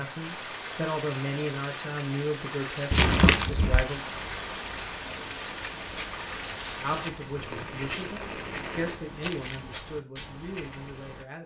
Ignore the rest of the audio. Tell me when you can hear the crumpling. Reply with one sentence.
The crumpling can be heard from 2.9 to 3.9 s and from 9.2 to 9.7 s.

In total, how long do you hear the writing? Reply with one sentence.
The writing can be heard for 8 seconds in total.